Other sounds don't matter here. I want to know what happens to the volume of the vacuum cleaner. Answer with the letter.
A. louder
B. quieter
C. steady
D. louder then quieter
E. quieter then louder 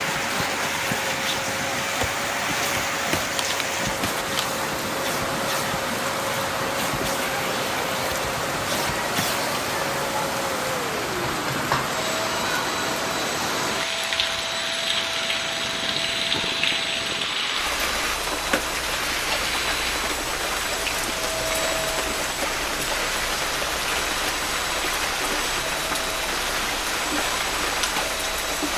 C.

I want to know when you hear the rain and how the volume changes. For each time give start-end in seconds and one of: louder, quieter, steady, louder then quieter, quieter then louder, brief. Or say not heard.
0.0-28.7 steady.